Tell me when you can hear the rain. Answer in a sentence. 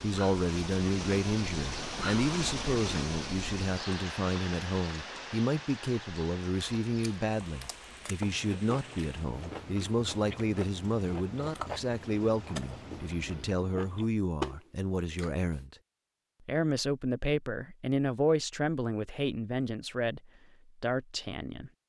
You can hear the rain from 0.0 to 13.6 s.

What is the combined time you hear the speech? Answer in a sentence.
You can hear the speech for 21 seconds altogether.